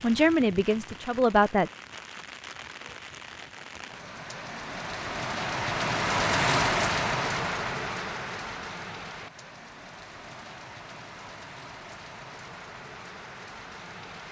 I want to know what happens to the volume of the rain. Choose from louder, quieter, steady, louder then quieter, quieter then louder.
louder then quieter.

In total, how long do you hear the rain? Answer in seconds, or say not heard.
14 s.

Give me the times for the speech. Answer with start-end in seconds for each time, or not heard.
0.0-1.7.